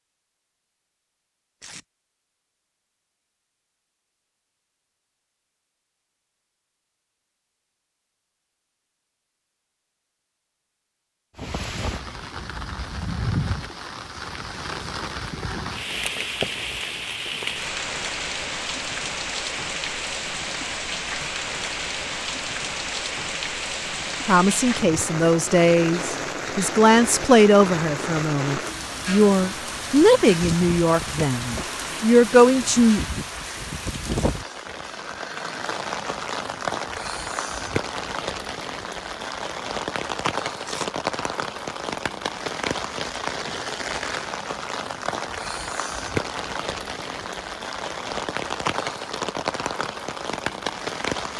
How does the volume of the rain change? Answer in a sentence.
The volume of the rain stays about the same.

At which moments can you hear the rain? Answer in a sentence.
The rain can be heard from 11.3 to 51.3 s.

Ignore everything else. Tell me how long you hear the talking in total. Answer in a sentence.
The talking can be heard for 9 seconds in total.